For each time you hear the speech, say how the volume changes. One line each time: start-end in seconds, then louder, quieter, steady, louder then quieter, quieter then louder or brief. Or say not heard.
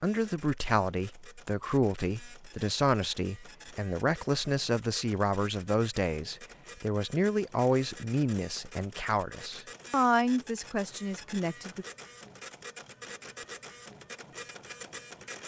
0.0-11.8 steady.